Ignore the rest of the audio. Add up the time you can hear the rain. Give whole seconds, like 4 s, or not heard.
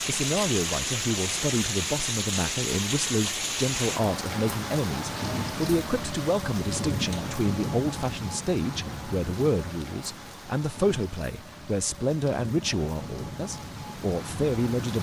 15 s.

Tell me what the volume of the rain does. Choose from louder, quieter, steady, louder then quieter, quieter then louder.
quieter.